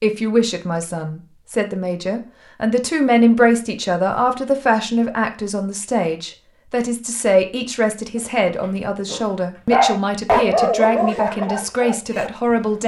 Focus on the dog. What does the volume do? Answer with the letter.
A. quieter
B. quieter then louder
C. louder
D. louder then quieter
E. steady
D.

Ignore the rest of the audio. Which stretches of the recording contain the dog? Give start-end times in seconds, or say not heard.
8.2-12.6.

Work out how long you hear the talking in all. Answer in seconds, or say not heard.
13 s.